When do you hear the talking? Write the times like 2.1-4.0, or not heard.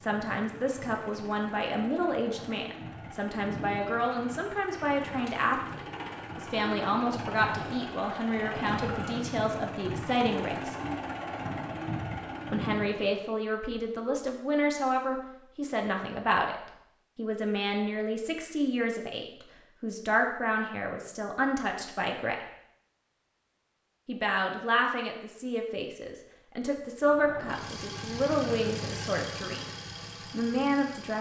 0.0-10.8, 12.5-22.4, 24.1-29.6, 30.3-31.1.